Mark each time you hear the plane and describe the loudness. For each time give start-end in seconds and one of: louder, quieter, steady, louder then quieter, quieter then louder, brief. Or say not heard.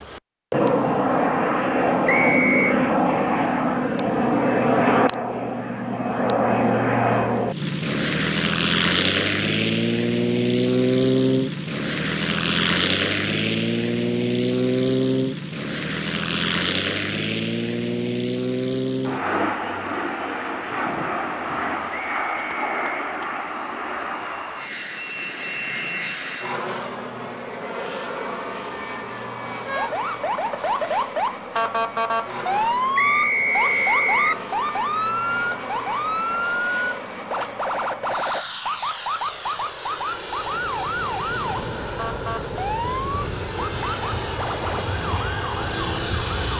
0.0-46.5 quieter.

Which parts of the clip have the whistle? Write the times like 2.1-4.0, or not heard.
2.0-2.8, 21.9-23.1, 33.0-34.4.